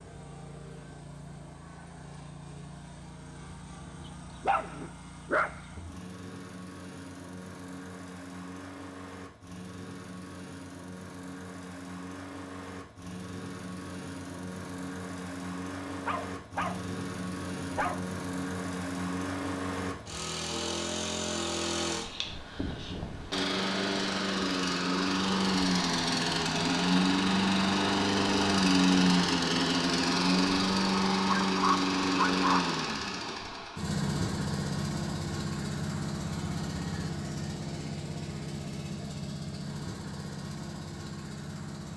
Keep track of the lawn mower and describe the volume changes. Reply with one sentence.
The loudness of the lawn mower goes up, then down.